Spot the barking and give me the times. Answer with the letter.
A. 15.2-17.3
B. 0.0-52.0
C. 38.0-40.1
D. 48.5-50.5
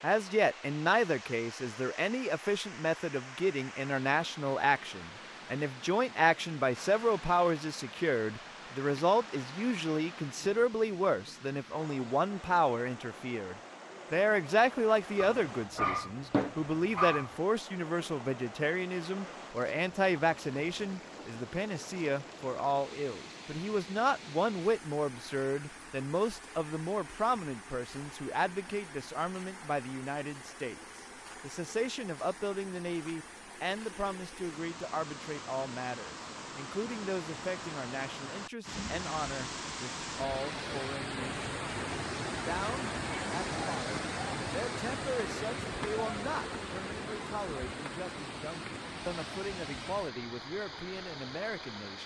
A.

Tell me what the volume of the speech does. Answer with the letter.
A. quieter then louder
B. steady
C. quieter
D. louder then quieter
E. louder
C.